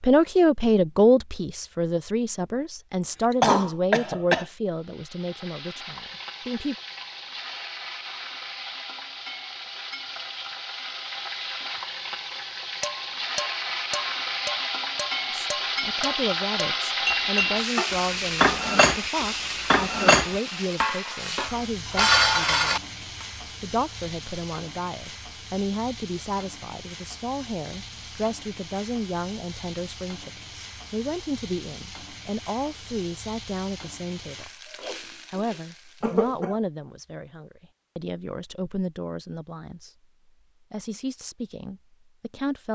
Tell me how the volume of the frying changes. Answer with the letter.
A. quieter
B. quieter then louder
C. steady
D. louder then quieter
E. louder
D.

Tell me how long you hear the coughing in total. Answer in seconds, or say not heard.
2 s.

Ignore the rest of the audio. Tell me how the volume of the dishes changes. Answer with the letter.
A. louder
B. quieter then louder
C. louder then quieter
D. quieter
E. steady
A.